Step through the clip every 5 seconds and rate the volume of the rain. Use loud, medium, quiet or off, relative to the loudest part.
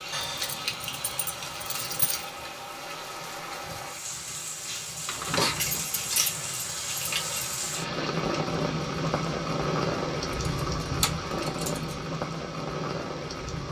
medium, loud, loud.